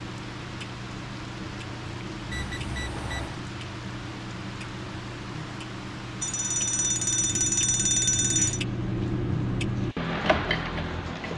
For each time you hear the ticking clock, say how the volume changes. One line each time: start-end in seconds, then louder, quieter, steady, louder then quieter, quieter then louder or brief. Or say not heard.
0.0-11.3 louder.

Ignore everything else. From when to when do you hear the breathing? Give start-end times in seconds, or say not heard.
not heard.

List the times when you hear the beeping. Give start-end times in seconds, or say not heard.
2.3-3.4, 6.2-8.6.